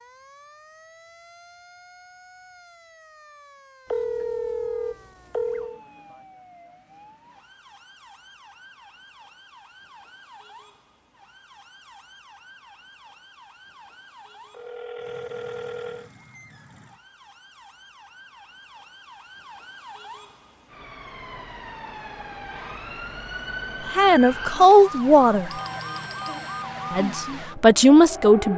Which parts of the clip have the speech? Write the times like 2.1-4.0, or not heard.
23.9-25.5, 26.9-28.5.